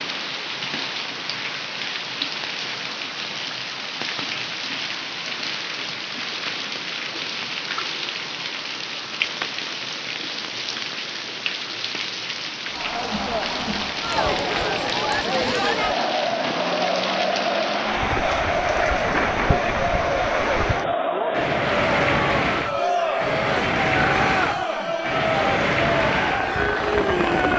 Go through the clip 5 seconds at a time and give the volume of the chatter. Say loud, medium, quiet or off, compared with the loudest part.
off, off, loud, loud, loud, loud.